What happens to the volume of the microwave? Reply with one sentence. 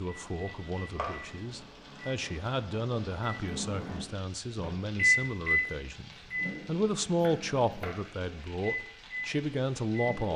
The volume of the microwave goes up, then down.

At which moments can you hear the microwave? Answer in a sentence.
You can hear the microwave from 0.0 to 10.3 s.